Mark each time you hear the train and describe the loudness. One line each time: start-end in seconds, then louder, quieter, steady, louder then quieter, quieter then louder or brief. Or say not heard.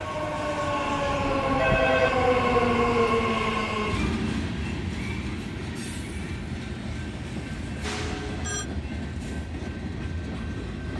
0.0-10.9 quieter.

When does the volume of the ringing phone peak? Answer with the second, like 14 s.
2 s.